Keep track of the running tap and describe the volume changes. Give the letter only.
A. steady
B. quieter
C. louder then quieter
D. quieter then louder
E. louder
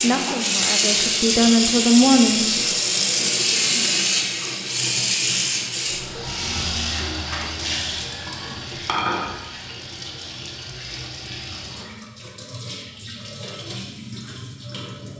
B.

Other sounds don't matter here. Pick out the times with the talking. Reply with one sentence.
The talking can be heard from 0.0 to 2.5 s.